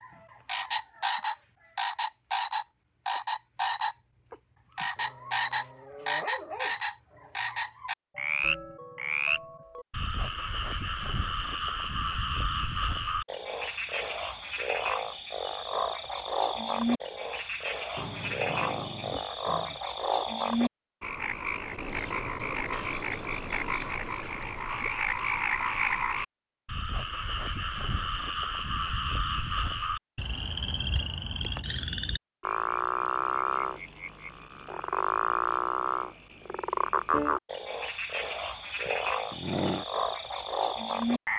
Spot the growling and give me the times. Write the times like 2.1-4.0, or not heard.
5.0-7.7, 17.9-19.9, 38.9-39.9.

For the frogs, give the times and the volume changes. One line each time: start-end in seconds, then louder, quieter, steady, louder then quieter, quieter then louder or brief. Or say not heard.
0.0-41.3 steady.